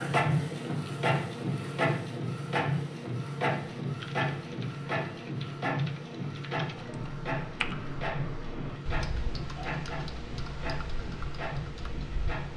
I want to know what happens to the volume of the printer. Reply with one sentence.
The volume of the printer goes down.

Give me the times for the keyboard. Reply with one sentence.
The keyboard can be heard from 3.9 to 12.5 s.